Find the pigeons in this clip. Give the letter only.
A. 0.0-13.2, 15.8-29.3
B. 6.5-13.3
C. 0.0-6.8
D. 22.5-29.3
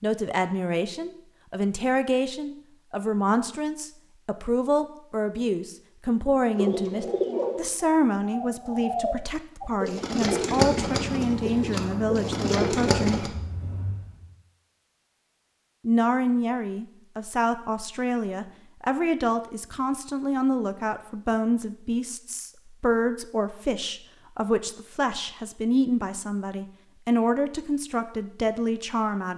B.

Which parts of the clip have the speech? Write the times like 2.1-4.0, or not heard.
0.0-13.2, 15.8-29.3.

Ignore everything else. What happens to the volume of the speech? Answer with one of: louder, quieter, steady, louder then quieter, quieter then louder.
steady.